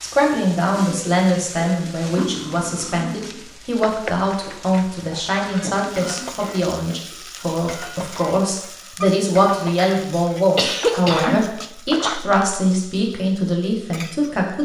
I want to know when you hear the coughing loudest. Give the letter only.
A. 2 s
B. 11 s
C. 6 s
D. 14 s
B.